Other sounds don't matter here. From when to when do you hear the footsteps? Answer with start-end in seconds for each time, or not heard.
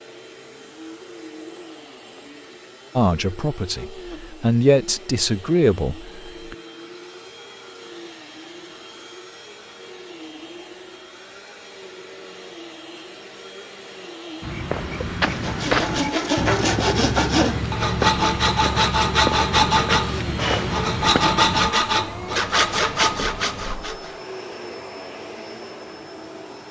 14.4-21.8.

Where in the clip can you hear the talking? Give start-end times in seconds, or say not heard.
3.0-6.5.